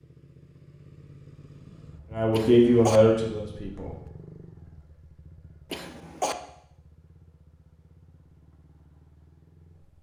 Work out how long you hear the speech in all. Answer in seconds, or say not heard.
2 s.